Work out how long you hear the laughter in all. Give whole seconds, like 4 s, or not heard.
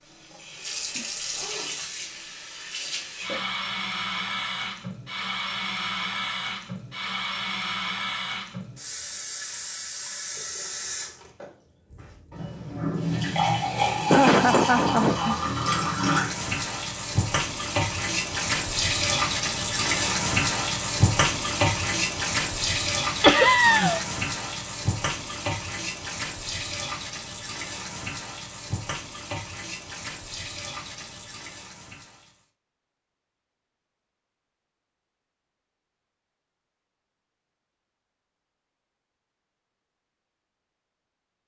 2 s.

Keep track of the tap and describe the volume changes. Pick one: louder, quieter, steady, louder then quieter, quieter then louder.
louder then quieter.